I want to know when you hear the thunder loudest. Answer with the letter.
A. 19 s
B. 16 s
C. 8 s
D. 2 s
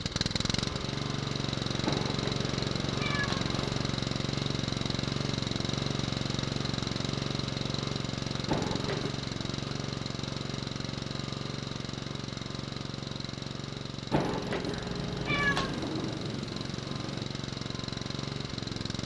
B.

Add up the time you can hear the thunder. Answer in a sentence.
The thunder can be heard for 2 seconds in total.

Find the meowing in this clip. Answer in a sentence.
The meowing can be heard from 1.8 to 3.8 s, from 8.4 to 9.2 s and from 14.1 to 15.8 s.